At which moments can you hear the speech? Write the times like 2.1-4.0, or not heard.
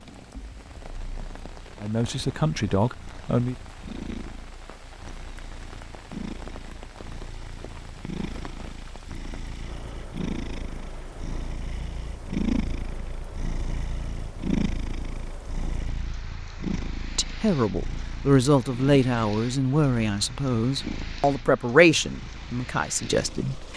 1.8-3.5, 17.1-23.7.